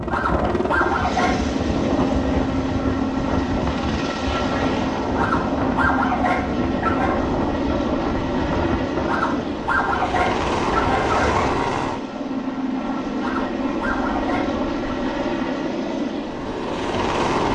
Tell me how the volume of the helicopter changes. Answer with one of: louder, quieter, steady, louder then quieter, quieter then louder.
steady.